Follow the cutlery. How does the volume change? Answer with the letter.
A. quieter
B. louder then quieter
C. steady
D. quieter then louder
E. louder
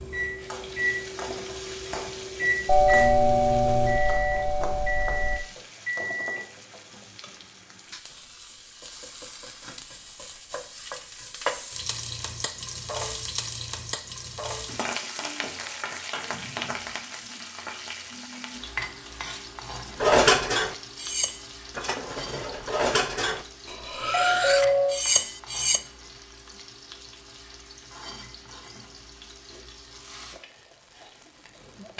D.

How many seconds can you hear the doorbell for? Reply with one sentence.
You can hear the doorbell for 4 seconds altogether.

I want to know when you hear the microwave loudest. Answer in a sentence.
The volume of the microwave peaks at 3 seconds.